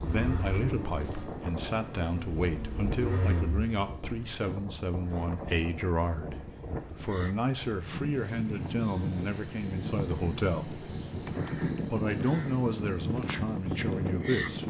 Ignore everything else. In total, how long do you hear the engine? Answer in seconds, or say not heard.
4 s.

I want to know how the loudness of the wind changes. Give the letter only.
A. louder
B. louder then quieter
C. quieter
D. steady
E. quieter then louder
A.